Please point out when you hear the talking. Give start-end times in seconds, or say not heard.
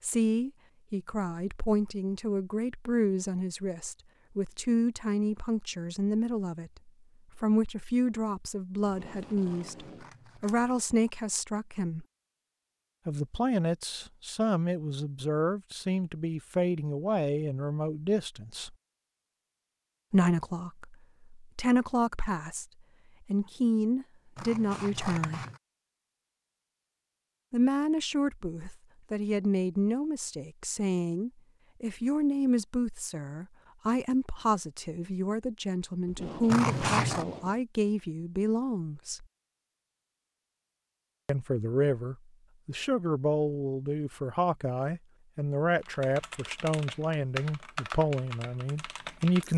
0.0-12.1, 13.1-18.8, 20.1-22.6, 23.2-25.4, 27.5-39.2, 41.2-49.5.